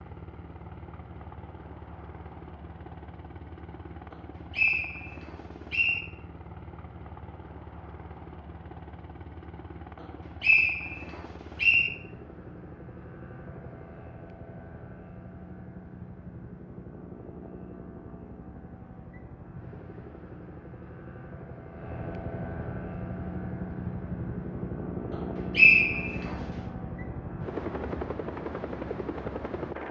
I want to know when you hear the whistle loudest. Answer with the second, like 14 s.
26 s.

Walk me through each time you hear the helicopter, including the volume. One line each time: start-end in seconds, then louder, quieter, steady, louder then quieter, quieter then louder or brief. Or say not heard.
0.0-29.8 louder.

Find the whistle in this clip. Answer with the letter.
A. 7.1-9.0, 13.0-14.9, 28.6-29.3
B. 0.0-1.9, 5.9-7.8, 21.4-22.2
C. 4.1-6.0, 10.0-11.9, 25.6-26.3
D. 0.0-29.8
C.